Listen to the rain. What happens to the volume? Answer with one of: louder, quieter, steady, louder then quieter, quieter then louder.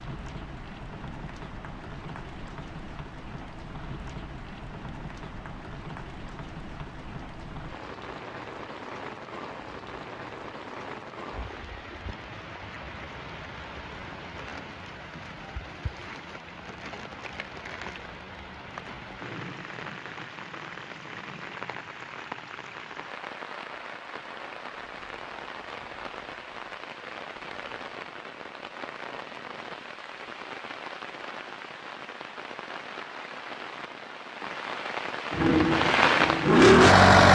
louder.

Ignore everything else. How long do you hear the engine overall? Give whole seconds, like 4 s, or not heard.
2 s.